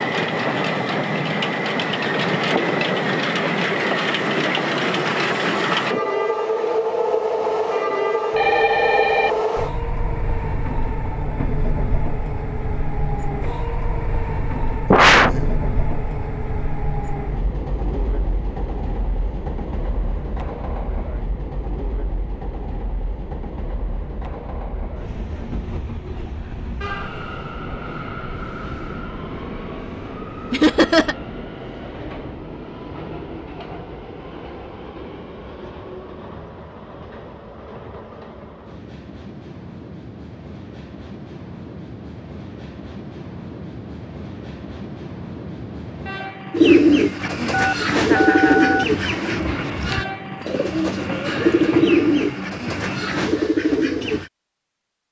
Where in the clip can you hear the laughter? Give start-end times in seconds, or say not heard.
14.9-15.5, 30.5-31.1, 48.0-48.8.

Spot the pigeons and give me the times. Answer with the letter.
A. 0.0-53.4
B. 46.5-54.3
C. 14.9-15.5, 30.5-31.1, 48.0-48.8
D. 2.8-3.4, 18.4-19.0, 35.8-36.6
B.